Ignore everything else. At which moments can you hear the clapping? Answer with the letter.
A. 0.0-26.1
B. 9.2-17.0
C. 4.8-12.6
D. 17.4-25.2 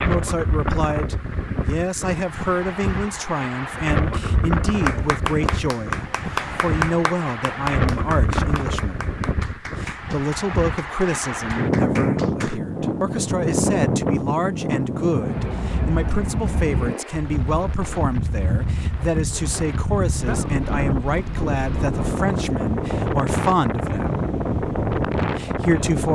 C.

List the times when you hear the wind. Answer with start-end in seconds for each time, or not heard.
0.0-26.1.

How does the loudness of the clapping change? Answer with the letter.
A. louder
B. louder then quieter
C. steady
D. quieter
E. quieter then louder
D.